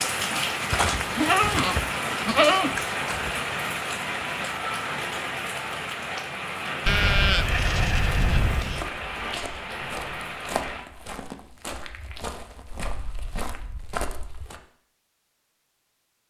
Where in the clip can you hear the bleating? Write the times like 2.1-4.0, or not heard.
0.7-3.3, 6.8-8.8, 12.8-14.5.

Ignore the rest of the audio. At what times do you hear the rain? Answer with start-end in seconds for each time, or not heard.
0.0-10.8.